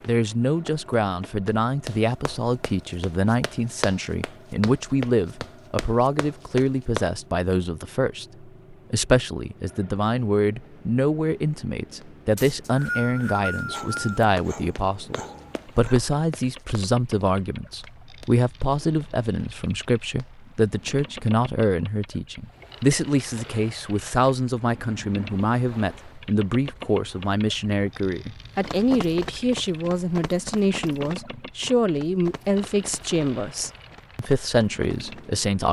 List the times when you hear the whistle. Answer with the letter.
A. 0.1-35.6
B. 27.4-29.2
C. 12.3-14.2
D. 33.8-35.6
C.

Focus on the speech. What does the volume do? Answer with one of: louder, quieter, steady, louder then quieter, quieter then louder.
steady.